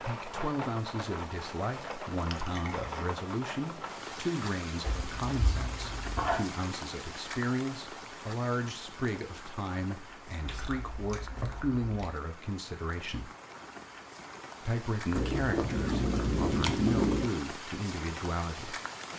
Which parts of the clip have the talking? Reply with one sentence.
You can hear the talking from 0.0 to 13.3 s and from 14.6 to 18.8 s.